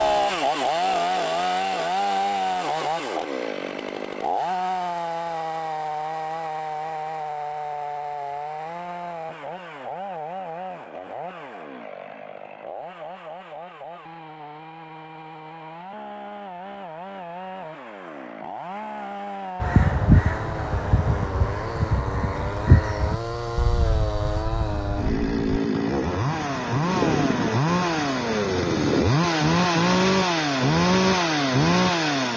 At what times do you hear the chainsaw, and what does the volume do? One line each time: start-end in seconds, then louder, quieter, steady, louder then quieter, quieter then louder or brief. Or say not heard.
0.0-32.3 quieter then louder.